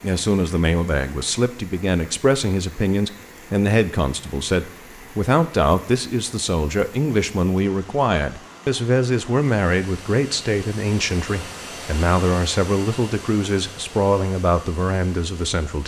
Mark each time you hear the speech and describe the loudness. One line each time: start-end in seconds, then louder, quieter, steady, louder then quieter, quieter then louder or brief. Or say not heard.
0.0-15.8 steady.